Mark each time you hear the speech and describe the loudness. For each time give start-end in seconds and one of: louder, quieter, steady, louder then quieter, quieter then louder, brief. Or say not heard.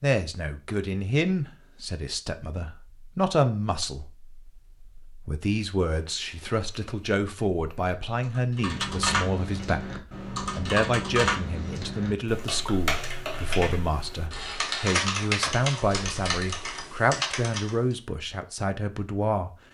0.0-19.5 steady.